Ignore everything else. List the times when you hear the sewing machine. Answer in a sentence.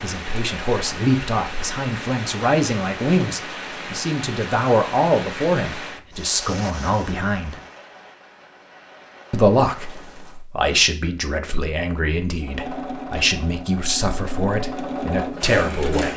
You can hear the sewing machine from 12.4 to 16.1 s.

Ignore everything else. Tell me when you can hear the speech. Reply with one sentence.
The speech can be heard from 0.0 to 7.6 s and from 9.3 to 16.1 s.